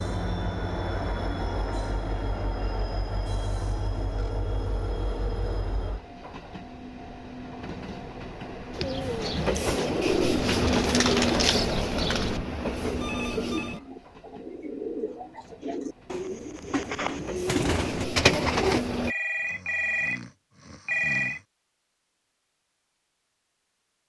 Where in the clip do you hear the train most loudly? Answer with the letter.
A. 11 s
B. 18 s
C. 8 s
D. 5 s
A.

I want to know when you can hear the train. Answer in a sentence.
The train can be heard from 0.0 to 19.1 s.